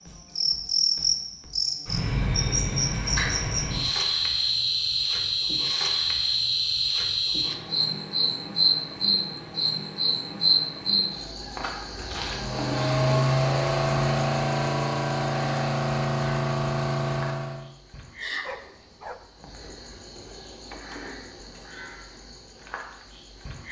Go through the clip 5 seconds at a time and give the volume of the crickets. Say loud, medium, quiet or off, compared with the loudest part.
loud, loud, loud, quiet, quiet.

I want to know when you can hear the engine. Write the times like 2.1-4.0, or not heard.
12.2-17.6.